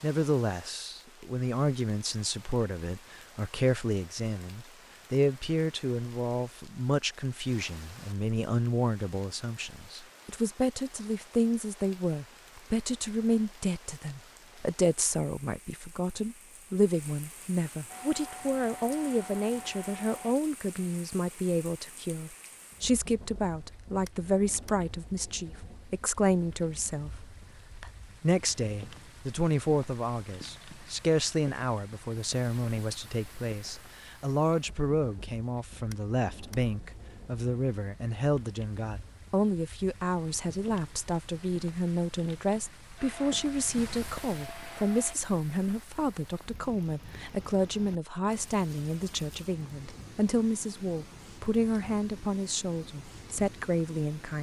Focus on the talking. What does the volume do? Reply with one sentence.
The volume of the talking stays about the same.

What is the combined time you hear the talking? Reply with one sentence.
The talking can be heard for 54 seconds in total.